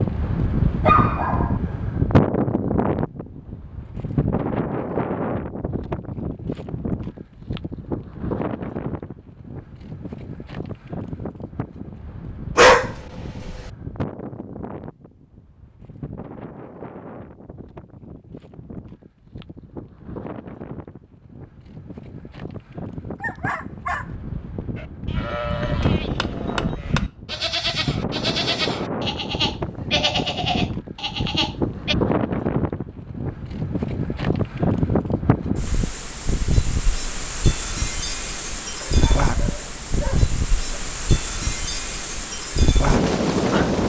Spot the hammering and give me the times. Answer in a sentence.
You can hear the hammering from 25.8 to 27.1 s.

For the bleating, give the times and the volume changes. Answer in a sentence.
You can hear the bleating from 24.8 to 31.9 s, at a steady volume.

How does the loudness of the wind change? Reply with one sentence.
The loudness of the wind goes down, then up.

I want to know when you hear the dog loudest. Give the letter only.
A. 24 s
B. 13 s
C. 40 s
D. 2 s
B.